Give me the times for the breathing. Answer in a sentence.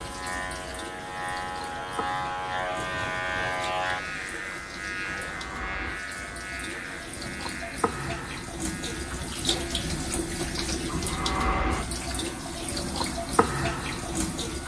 The breathing can't be heard in this clip.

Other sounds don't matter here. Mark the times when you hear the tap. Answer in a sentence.
You can hear the tap from 0.0 to 14.6 s.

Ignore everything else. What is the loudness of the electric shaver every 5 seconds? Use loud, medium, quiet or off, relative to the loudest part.
loud, medium, quiet.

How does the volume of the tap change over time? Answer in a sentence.
The loudness of the tap goes up.